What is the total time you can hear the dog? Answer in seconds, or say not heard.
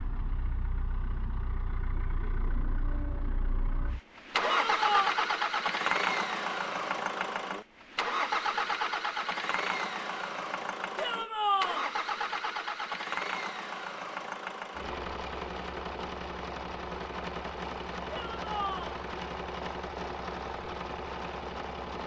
not heard.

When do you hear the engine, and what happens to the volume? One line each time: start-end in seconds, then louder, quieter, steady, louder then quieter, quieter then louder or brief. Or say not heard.
0.0-22.0 louder then quieter.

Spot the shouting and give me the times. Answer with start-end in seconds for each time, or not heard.
4.4-5.2, 10.9-11.8, 18.1-19.0.